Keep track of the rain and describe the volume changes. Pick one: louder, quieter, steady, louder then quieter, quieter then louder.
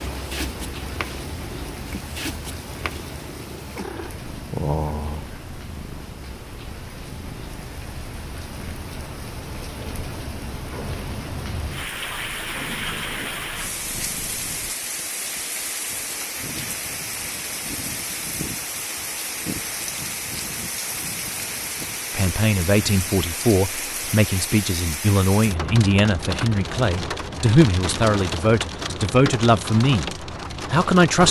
louder.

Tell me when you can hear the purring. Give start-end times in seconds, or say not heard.
0.0-14.8.